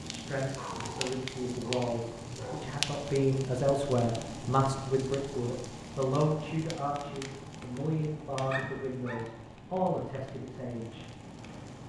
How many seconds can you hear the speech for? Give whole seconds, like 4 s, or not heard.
11 s.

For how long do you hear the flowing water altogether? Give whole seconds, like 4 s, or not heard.
not heard.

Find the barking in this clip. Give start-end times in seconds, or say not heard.
0.5-2.8, 8.5-9.2.